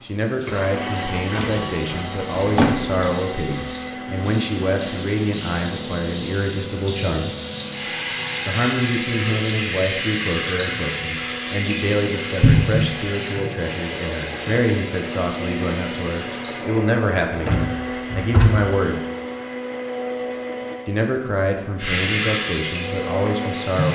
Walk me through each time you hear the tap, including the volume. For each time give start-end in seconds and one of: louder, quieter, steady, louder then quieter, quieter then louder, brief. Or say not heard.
0.1-16.6 louder then quieter
21.8-23.9 brief.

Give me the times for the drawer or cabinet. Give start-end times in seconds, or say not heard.
1.4-3.1, 12.4-12.8, 17.4-18.6.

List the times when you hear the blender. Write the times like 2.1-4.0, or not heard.
0.0-23.9.